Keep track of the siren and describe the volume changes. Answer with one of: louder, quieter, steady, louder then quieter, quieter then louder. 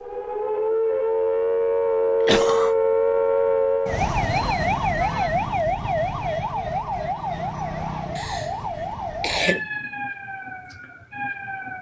quieter.